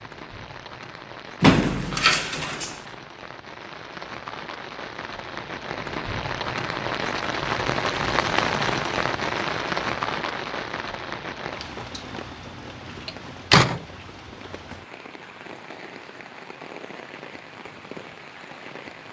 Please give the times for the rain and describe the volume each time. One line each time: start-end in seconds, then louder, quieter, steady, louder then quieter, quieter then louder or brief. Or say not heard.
0.0-19.0 louder then quieter.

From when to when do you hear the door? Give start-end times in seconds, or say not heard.
1.4-2.8, 13.1-13.8.